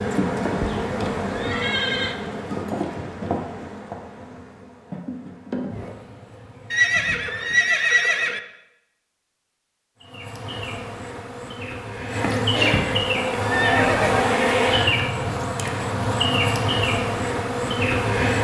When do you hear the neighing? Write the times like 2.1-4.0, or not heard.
0.6-2.1, 6.7-8.4, 13.2-14.8.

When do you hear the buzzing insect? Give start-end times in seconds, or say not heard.
0.0-7.6, 10.0-18.4.